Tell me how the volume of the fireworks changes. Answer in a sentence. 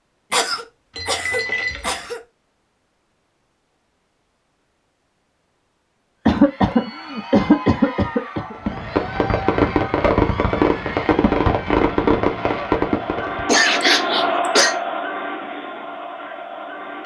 The loudness of the fireworks stays about the same.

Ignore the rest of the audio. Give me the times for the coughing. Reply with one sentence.
The coughing can be heard from 0.3 to 2.2 s, from 6.2 to 8.6 s and from 13.4 to 14.8 s.